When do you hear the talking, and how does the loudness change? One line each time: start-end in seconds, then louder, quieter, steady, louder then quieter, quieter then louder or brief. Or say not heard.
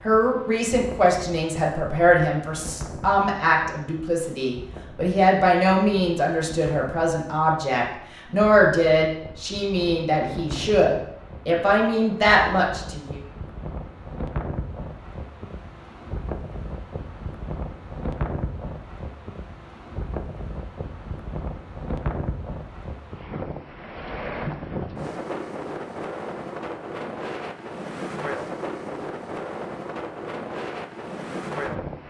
0.0-13.2 steady.